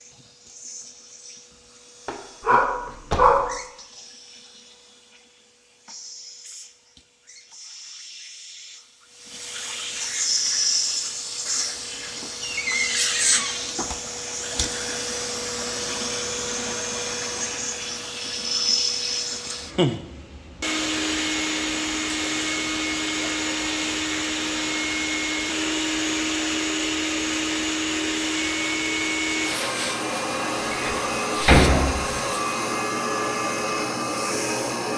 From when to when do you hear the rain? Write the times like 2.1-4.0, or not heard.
not heard.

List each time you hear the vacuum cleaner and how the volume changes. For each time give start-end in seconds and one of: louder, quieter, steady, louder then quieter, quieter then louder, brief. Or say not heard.
0.0-34.9 louder.